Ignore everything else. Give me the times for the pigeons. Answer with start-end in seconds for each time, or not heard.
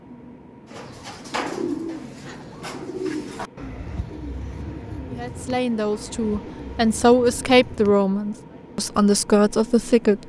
0.7-8.0.